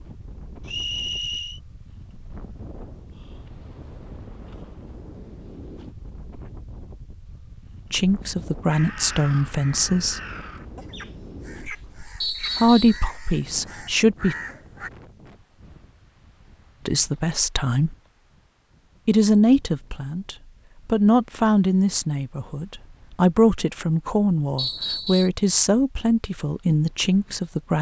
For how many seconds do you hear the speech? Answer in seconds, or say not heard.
14 s.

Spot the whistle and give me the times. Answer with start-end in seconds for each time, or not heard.
0.7-1.6, 12.2-13.1, 24.6-25.3.